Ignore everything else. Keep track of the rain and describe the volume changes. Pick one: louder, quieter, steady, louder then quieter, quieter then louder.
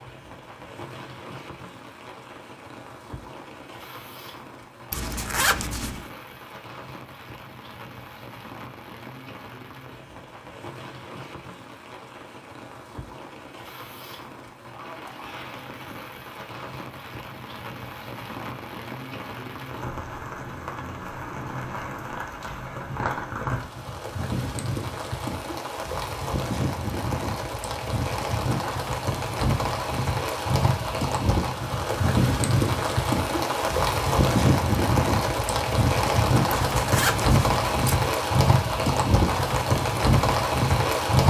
louder.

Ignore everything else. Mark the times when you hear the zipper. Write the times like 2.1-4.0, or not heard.
4.9-6.0, 36.6-38.1.